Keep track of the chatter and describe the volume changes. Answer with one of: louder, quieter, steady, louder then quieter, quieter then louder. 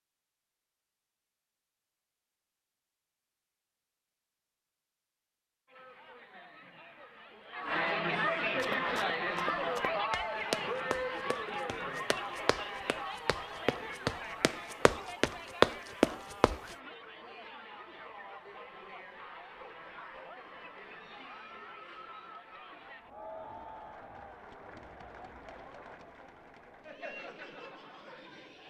quieter.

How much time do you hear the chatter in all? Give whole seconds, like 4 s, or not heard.
23 s.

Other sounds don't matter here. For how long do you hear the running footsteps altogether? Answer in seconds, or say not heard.
8 s.